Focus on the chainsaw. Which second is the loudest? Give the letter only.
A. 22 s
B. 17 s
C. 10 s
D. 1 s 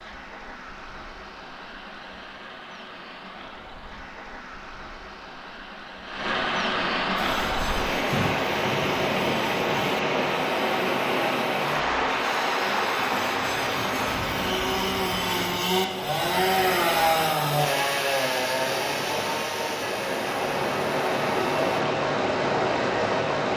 B.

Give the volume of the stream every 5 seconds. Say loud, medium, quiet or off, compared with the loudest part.
quiet, loud, loud, medium, loud.